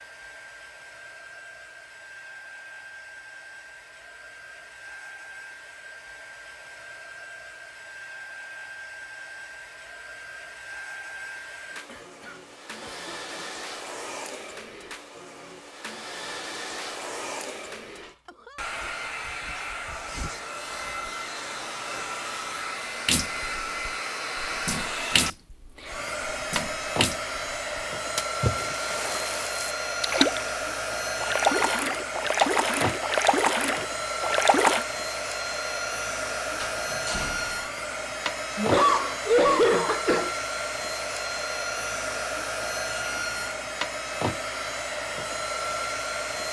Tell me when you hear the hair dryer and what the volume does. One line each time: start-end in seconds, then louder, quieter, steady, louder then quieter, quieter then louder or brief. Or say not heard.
0.0-46.4 louder.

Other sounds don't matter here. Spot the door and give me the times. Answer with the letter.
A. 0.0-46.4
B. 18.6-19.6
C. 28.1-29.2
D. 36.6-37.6
D.